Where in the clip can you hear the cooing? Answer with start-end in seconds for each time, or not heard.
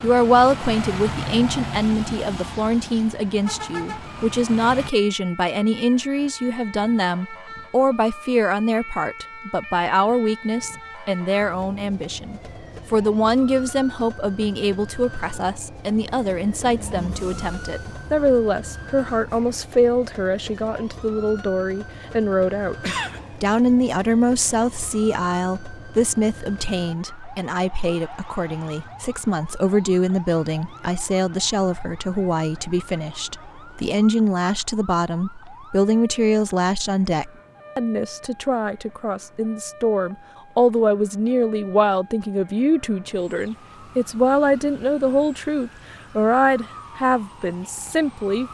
not heard.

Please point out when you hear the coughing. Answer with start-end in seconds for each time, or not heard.
22.8-23.5.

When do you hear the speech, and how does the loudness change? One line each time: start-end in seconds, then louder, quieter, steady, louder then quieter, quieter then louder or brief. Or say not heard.
0.0-48.5 steady.